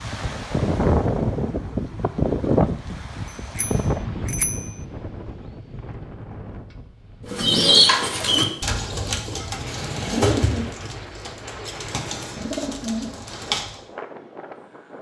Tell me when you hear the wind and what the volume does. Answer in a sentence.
You can hear the wind from 0.0 to 14.9 s, getting quieter.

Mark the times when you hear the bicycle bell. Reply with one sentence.
The bicycle bell can be heard from 3.2 to 4.8 s.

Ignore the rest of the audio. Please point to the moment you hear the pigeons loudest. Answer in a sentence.
The loudest moment of the pigeons is at 8 seconds.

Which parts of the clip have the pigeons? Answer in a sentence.
The pigeons can be heard from 7.3 to 13.8 s.